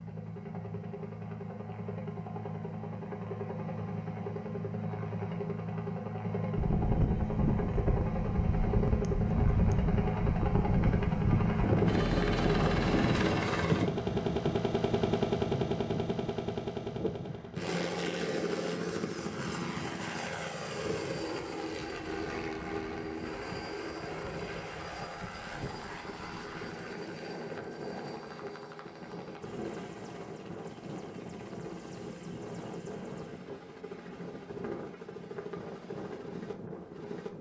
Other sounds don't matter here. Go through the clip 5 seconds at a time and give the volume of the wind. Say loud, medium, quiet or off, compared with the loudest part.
off, loud, loud, medium, quiet, quiet, quiet, quiet.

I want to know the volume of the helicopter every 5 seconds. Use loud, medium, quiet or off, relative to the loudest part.
medium, loud, loud, loud, medium, quiet, quiet, quiet.